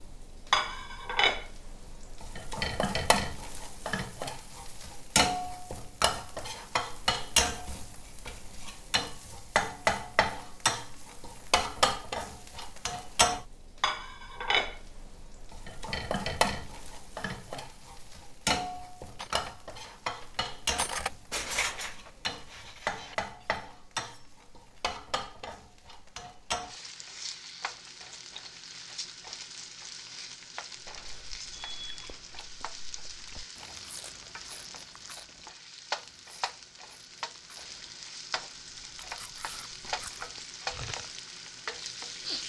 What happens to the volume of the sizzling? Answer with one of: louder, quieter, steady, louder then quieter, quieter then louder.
quieter.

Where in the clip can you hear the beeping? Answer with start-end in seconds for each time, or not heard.
31.5-32.5.